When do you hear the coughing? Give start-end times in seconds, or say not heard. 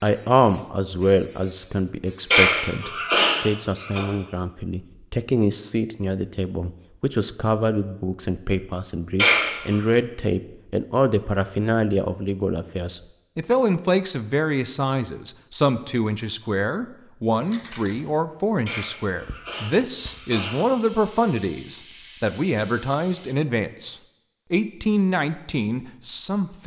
2.3-4.0, 9.2-9.8, 18.6-20.6.